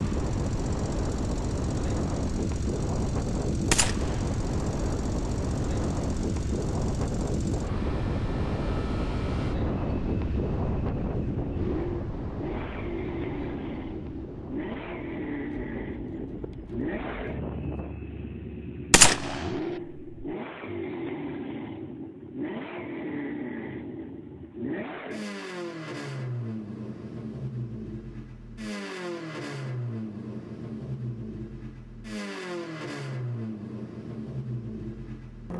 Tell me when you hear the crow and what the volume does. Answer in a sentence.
You can't hear the crow here.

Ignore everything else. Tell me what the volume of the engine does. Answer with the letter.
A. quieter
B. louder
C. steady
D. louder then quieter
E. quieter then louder
B.